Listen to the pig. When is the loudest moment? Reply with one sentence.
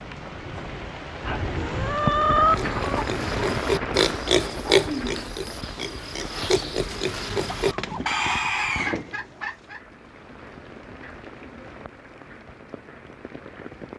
The loudest moment of the pig is at 5 seconds.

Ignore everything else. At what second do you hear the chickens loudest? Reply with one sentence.
The volume of the chickens peaks at 2 seconds.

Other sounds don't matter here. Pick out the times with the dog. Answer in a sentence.
You can't hear the dog here.